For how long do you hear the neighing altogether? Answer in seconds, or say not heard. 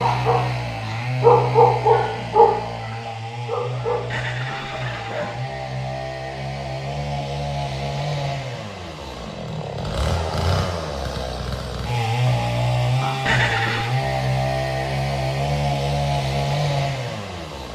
2 s.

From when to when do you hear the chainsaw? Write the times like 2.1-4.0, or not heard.
0.0-17.7.